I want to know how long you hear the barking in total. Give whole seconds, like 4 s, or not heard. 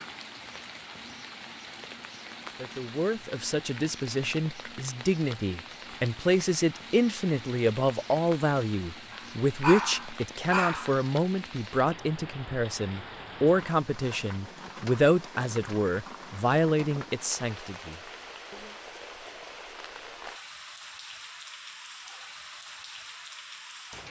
2 s.